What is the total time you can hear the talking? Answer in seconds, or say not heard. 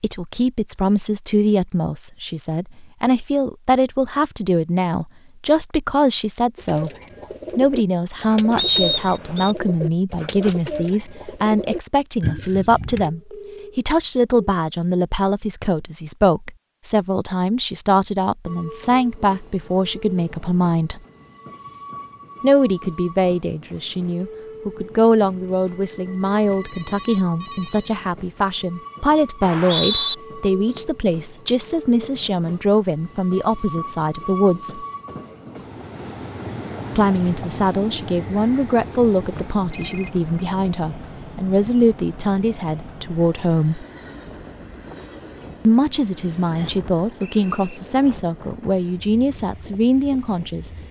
45 s.